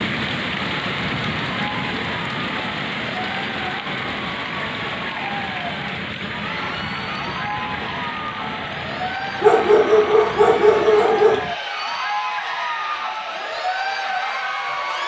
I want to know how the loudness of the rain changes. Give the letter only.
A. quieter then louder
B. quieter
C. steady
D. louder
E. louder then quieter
B.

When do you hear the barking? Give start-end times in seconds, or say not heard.
9.4-11.4.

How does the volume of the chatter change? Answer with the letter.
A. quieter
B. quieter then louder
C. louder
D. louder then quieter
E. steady
C.